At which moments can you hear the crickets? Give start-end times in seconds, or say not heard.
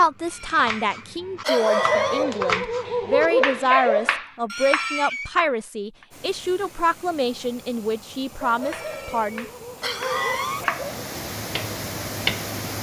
not heard.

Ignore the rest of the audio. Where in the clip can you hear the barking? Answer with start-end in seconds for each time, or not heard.
1.4-4.2, 8.4-11.0.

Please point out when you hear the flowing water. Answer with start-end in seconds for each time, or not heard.
6.1-12.7.